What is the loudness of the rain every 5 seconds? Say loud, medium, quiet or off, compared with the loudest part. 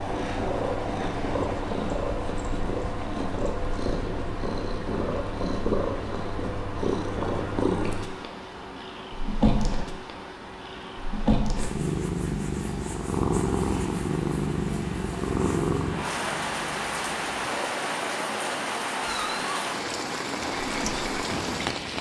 quiet, quiet, quiet, loud, loud.